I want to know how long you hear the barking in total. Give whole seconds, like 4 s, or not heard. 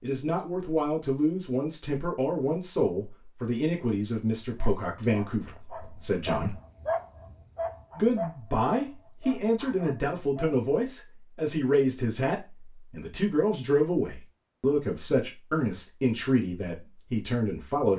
6 s.